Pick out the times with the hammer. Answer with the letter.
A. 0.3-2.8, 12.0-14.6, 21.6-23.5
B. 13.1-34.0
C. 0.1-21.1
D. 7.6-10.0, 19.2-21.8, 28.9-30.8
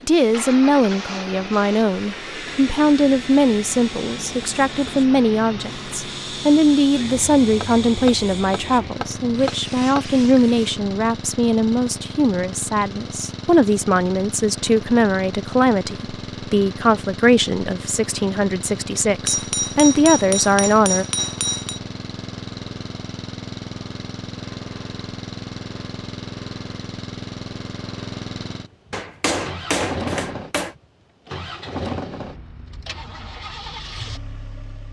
D.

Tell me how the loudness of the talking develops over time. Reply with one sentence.
The volume of the talking stays about the same.